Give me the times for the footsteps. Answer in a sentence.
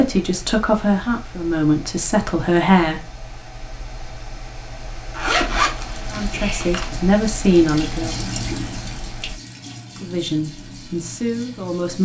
The footsteps can't be heard in this clip.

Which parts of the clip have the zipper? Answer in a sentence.
You can hear the zipper from 5.2 to 6.9 s.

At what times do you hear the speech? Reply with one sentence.
The speech can be heard from 0.0 to 3.0 s, from 6.1 to 8.2 s and from 10.0 to 11.9 s.